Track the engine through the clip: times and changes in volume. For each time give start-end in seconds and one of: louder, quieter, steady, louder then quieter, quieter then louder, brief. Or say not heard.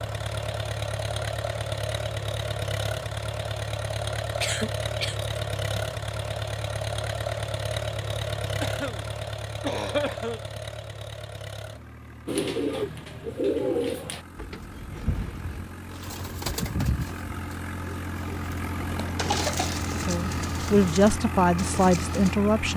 0.0-22.7 quieter then louder.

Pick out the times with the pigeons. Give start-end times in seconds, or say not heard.
12.2-22.4.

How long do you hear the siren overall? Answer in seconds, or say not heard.
not heard.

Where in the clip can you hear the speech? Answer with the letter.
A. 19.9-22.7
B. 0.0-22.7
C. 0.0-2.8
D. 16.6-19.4
A.